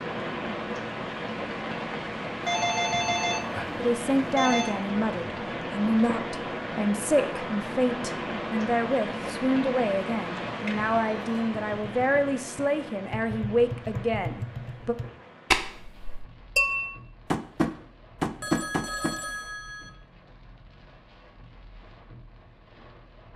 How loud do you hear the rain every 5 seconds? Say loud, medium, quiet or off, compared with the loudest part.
loud, loud, medium, quiet, quiet.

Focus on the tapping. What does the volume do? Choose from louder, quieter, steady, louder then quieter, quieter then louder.
louder.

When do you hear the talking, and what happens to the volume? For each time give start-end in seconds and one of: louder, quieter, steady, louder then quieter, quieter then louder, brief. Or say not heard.
3.8-14.9 steady.